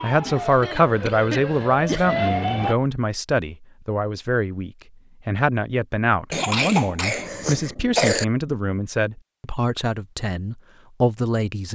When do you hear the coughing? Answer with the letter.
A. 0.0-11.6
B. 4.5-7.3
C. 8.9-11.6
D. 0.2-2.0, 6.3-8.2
D.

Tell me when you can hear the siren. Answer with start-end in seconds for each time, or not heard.
0.0-2.8.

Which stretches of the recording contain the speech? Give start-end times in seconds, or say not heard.
0.0-11.6.